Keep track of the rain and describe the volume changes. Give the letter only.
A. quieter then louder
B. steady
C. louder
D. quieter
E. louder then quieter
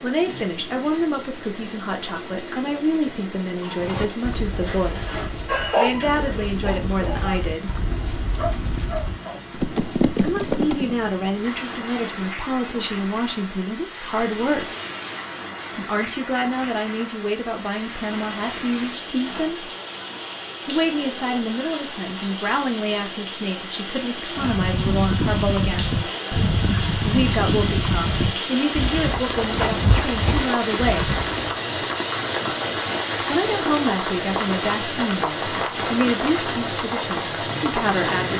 C.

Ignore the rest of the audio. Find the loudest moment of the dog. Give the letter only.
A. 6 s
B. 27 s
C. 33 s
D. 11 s
A.